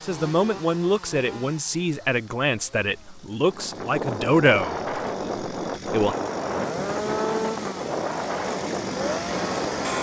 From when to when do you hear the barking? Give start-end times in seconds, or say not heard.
not heard.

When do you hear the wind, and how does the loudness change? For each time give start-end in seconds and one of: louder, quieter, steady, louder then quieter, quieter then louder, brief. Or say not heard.
3.5-9.9 steady.